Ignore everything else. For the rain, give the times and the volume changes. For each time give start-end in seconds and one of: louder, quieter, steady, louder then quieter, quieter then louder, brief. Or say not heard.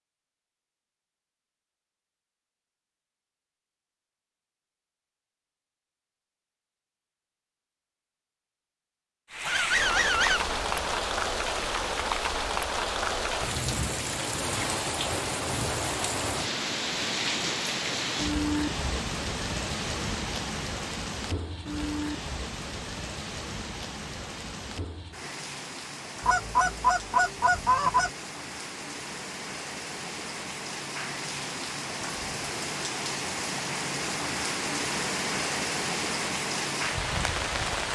9.3-37.8 quieter then louder.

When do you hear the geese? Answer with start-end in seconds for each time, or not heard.
9.4-10.9, 26.2-28.1.